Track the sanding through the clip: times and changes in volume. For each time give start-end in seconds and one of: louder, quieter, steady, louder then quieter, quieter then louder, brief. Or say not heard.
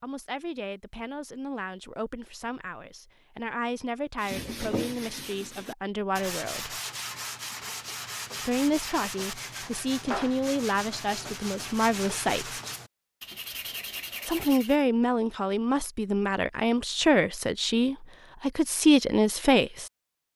4.2-14.8 steady.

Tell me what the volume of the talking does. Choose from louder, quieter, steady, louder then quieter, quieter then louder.
louder.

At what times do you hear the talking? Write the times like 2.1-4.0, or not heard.
0.0-6.8, 8.4-12.6, 14.2-19.9.